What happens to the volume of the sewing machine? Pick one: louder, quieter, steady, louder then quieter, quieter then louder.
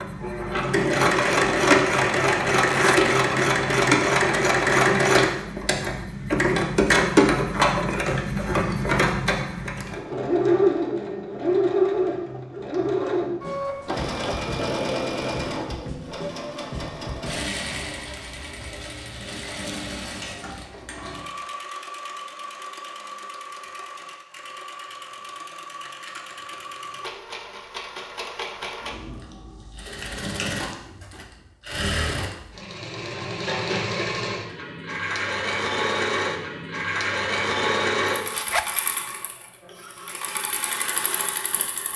quieter then louder.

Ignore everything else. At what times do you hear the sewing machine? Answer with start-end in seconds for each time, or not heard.
0.0-41.9.